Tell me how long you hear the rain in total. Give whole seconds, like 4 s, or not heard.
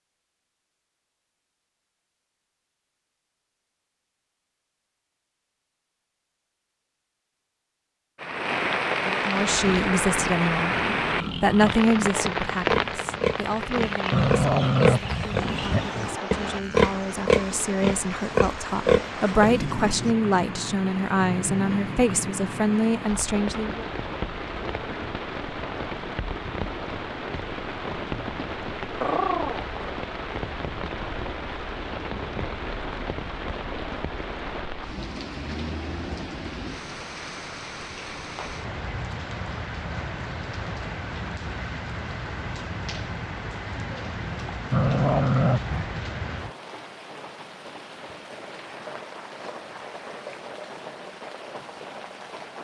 44 s.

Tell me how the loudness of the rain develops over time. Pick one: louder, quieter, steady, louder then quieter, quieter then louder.
quieter.